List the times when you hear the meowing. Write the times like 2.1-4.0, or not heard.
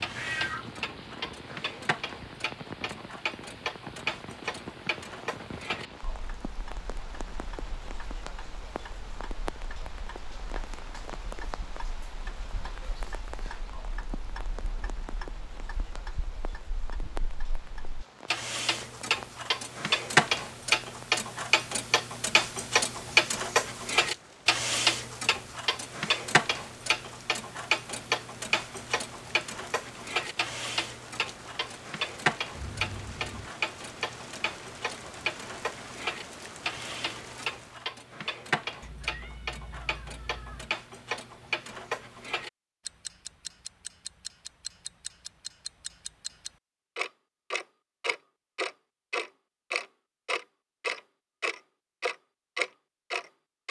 0.1-0.7, 32.5-33.5, 38.8-40.8.